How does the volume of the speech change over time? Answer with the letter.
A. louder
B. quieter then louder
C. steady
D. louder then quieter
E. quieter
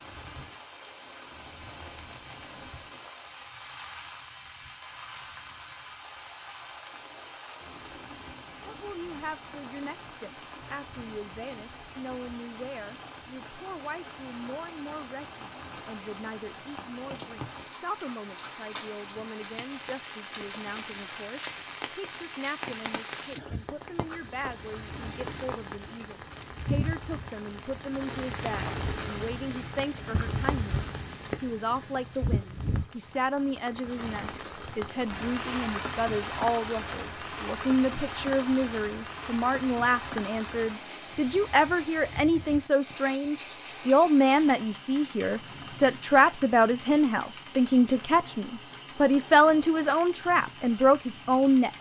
A.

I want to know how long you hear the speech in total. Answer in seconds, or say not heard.
43 s.